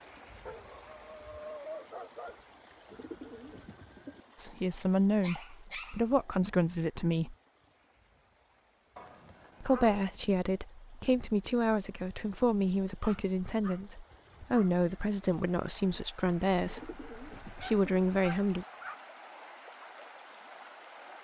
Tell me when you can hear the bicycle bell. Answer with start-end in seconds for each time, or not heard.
not heard.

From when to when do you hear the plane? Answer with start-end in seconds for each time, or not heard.
not heard.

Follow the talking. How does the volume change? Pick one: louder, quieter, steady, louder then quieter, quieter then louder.
steady.